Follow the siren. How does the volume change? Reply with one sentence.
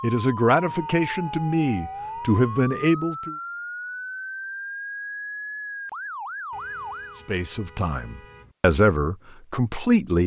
The volume of the siren stays about the same.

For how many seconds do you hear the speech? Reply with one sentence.
The speech can be heard for 6 seconds in total.